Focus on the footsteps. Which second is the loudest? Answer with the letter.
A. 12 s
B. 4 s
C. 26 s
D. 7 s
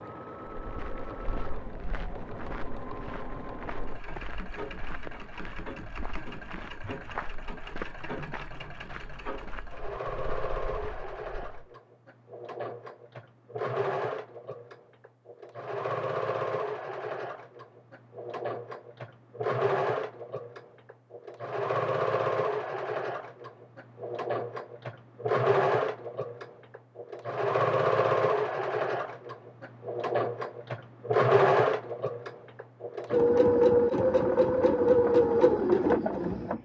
D.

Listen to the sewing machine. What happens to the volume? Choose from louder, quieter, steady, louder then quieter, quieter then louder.
louder.